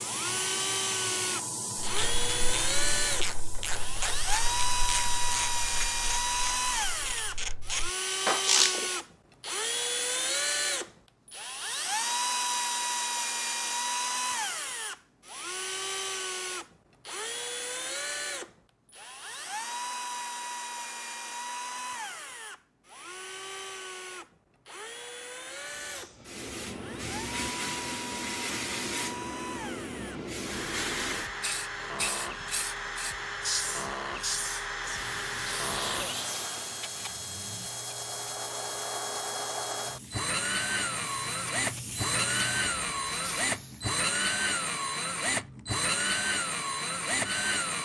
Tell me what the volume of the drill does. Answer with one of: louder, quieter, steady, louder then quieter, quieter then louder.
quieter then louder.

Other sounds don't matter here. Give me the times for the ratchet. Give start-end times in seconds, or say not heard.
1.8-8.8.